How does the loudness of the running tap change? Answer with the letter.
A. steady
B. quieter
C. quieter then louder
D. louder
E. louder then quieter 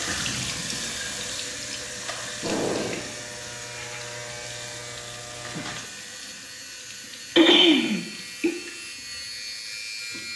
B.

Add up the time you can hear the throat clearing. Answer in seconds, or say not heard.
2 s.